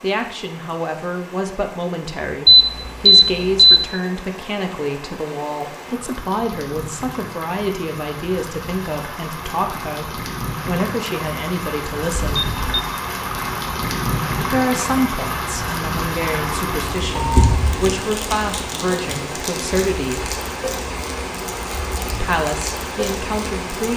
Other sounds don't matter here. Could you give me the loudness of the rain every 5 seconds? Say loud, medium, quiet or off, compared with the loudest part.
quiet, medium, loud, loud, loud.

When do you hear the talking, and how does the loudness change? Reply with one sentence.
The talking can be heard from 0.0 to 12.4 s, at a steady volume; from 14.4 to 20.4 s, at a steady volume; and briefly from 22.2 to 23.9 s.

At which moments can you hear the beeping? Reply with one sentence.
The beeping can be heard from 2.5 to 3.9 s, from 12.2 to 12.8 s and from 16.4 to 18.1 s.